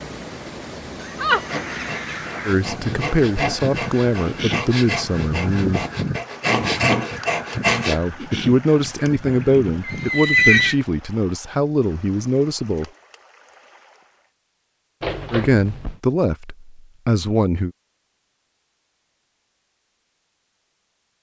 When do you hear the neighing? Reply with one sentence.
You can hear the neighing from 1.0 to 1.6 s, from 8.8 to 10.8 s and from 15.0 to 15.9 s.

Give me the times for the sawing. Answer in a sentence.
You can hear the sawing from 1.3 to 8.0 s.